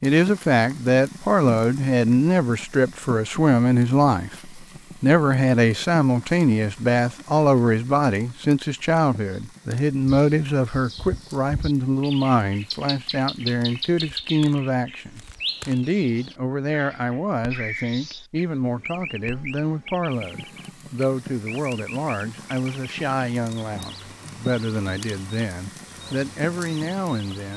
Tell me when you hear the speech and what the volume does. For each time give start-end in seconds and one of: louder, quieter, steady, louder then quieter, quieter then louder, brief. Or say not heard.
0.0-27.5 quieter.